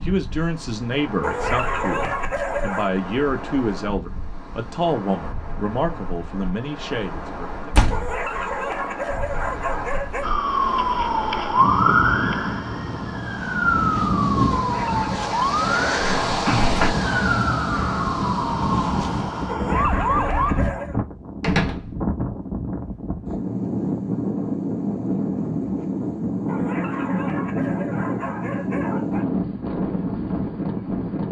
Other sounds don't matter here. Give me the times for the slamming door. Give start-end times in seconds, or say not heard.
7.7-8.2, 16.2-16.9, 21.4-21.9.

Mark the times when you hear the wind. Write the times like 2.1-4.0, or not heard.
0.0-31.2.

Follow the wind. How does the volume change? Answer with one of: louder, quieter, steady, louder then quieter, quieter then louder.
louder.